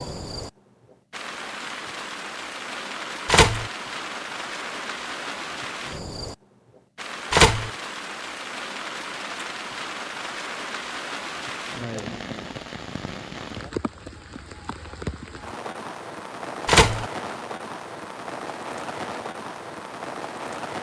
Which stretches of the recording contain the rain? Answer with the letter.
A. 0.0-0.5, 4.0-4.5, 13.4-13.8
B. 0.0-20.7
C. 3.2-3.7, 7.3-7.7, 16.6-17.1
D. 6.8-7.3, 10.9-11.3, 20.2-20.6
B.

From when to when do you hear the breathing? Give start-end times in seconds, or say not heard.
not heard.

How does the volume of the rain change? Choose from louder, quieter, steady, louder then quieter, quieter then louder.
steady.